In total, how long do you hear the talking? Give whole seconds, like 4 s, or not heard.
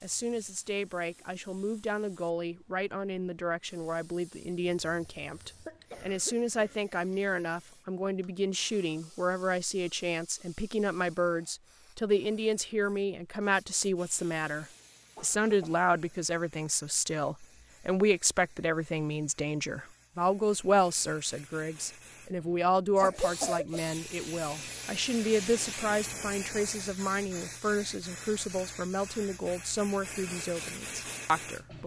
32 s.